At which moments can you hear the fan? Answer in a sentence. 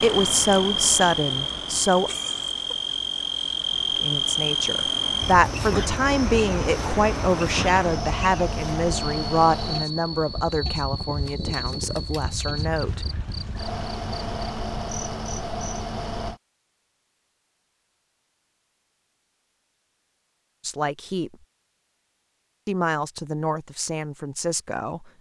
The fan can be heard from 0.0 to 16.4 s.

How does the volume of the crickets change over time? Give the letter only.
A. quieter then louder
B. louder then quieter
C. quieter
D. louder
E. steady
C.